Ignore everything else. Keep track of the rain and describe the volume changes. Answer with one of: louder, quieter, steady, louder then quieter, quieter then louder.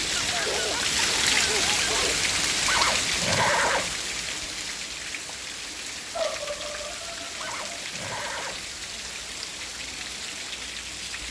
quieter.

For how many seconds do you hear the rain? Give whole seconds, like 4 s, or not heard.
11 s.